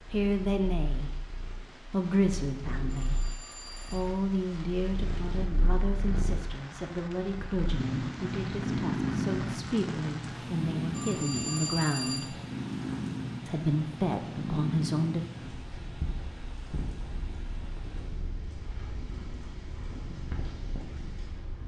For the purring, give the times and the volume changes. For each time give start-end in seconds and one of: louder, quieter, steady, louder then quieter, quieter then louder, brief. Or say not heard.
0.0-21.6 louder then quieter.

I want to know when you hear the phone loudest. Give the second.
12 s.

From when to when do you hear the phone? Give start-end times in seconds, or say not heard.
2.9-4.0, 10.9-12.3.